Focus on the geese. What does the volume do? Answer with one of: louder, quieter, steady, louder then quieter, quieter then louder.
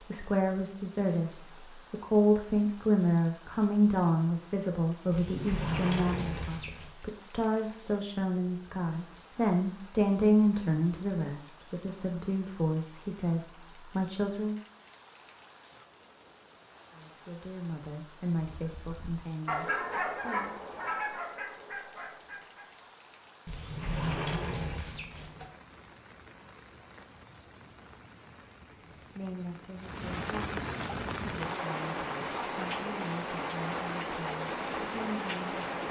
quieter.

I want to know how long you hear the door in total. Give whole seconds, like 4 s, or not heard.
4 s.